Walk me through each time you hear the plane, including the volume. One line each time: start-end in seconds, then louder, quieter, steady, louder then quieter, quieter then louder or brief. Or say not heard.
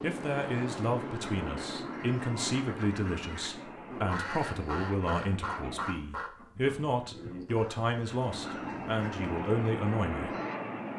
0.0-6.0 quieter
8.1-10.9 brief.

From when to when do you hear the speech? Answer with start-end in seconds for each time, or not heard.
0.0-10.3.